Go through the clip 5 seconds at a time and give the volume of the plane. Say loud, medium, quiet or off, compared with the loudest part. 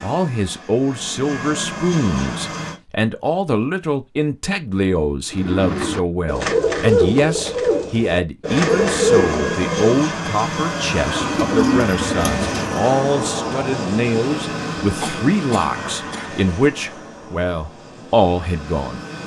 medium, loud, loud, medium.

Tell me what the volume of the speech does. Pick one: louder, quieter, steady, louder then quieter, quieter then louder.
steady.